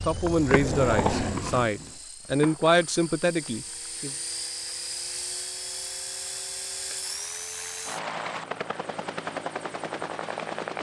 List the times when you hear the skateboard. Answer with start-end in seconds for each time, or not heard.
0.0-4.0.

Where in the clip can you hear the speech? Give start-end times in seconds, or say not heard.
0.1-4.1.